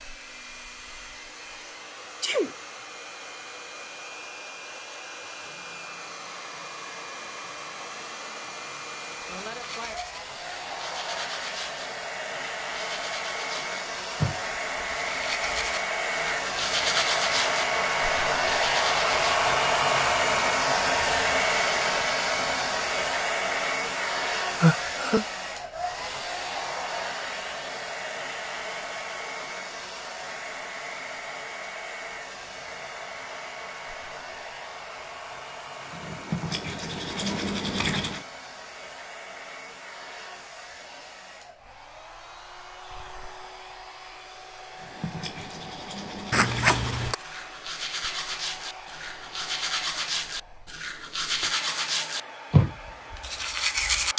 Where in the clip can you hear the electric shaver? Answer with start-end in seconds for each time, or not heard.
not heard.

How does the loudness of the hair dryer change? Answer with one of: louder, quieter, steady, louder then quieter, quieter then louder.
louder then quieter.